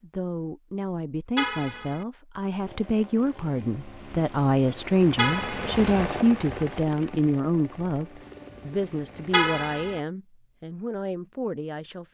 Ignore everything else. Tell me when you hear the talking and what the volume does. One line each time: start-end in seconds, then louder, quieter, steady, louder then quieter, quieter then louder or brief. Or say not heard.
0.0-12.0 louder then quieter.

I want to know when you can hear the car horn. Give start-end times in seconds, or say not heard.
1.4-2.0, 5.2-5.8, 9.3-10.0.